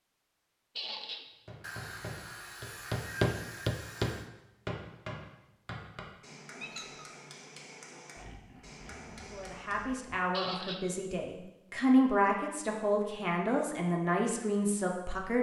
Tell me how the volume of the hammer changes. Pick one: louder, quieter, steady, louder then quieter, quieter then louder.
quieter.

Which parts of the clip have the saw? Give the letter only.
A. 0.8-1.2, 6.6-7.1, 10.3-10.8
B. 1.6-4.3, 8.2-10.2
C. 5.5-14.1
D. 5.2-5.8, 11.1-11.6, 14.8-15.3
B.